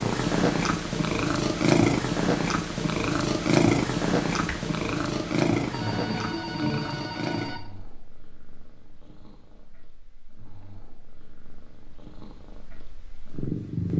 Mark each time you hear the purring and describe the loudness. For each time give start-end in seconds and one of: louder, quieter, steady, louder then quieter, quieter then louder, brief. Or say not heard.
0.0-13.9 quieter then louder.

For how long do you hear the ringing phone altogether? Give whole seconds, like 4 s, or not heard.
2 s.